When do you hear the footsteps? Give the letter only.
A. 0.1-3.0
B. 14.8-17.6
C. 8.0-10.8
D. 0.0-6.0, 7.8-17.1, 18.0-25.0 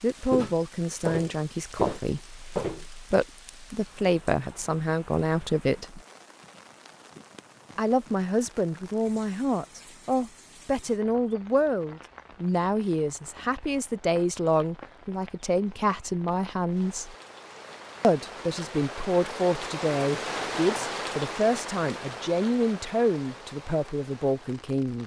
A.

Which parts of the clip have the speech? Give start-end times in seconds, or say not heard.
0.0-6.0, 7.8-17.1, 18.0-25.0.